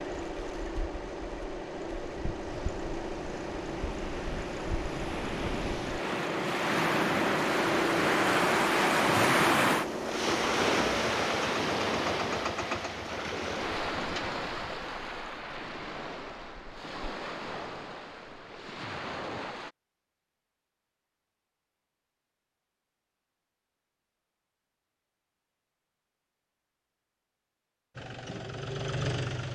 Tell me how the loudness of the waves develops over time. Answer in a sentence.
The volume of the waves goes up, then down.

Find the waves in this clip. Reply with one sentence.
You can hear the waves from 0.1 to 19.8 s.